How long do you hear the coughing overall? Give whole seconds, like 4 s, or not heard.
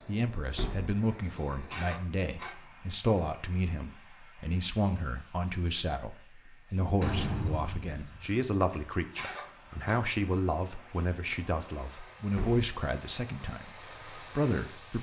2 s.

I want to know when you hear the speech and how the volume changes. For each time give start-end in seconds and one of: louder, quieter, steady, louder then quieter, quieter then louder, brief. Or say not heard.
0.1-14.9 steady.